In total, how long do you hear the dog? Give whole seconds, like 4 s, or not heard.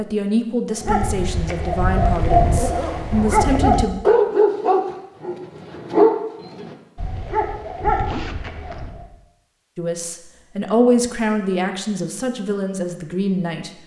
8 s.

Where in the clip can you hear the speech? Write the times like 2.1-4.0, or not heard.
0.0-4.0, 9.8-13.7.